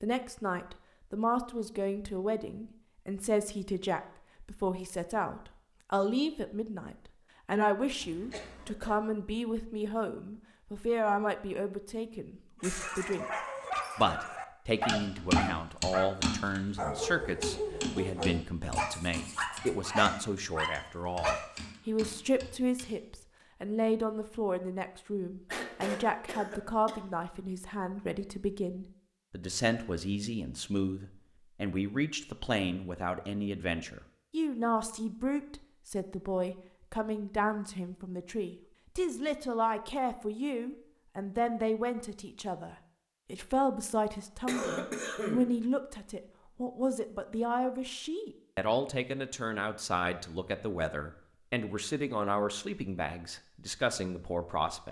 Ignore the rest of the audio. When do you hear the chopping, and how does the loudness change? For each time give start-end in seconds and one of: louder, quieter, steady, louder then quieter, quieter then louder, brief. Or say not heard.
14.8-22.9 quieter.